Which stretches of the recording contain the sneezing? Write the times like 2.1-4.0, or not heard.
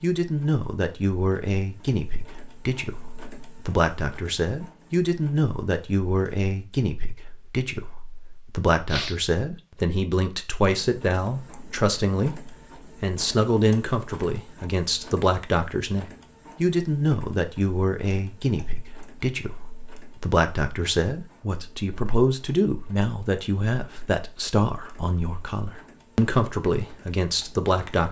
8.8-9.6.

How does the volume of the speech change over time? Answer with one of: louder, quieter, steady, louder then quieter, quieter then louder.
steady.